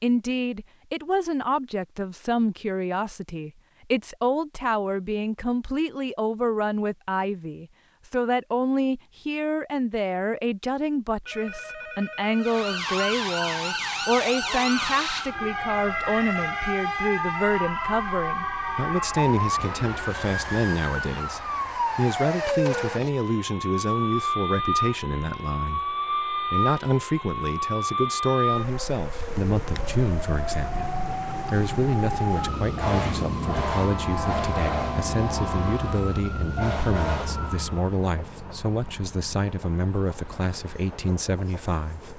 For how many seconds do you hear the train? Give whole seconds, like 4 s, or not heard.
13 s.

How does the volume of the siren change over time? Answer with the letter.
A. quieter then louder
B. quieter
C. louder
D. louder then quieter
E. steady
E.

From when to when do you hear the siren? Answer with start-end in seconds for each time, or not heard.
12.4-38.0.